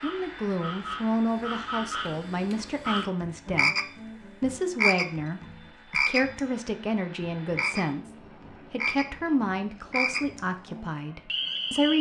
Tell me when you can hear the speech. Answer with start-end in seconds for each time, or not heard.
0.0-3.7, 4.4-11.9.